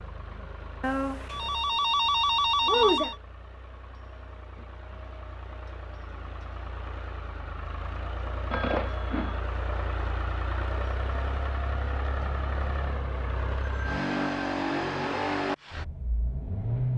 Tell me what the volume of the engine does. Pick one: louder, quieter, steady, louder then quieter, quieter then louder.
louder.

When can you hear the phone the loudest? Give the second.
3 s.